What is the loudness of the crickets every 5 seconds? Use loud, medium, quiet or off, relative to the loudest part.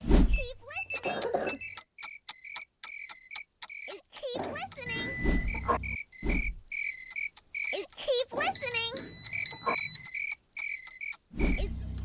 medium, loud, loud.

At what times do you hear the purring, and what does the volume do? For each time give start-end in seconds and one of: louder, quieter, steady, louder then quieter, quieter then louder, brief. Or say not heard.
not heard.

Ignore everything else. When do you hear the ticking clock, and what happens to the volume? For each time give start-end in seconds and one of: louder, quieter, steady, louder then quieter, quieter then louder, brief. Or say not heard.
0.0-12.0 quieter then louder.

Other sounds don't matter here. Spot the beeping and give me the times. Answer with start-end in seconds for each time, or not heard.
0.3-1.8, 4.8-5.5, 8.6-10.1.